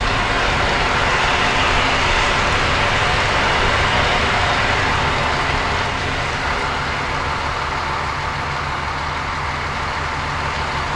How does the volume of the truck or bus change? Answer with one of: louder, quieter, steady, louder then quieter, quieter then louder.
steady.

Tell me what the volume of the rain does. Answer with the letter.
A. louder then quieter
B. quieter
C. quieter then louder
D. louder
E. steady
B.